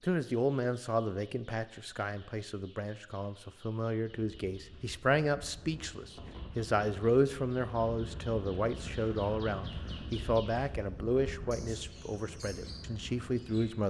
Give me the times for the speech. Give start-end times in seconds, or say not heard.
0.0-13.8.